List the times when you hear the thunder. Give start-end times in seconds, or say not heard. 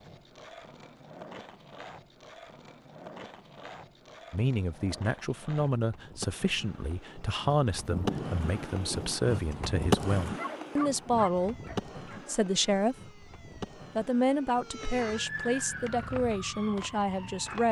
7.8-9.2.